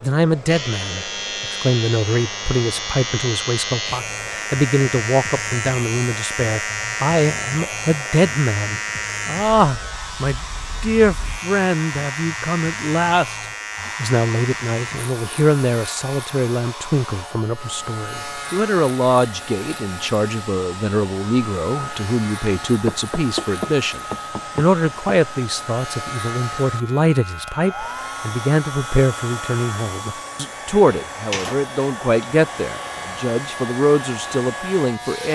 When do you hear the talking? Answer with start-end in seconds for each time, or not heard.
0.0-13.3, 14.0-35.3.